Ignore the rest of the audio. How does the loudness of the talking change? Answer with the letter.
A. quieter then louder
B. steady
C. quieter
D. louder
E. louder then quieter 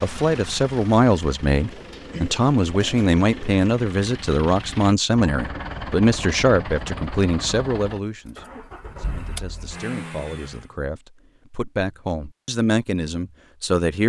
A.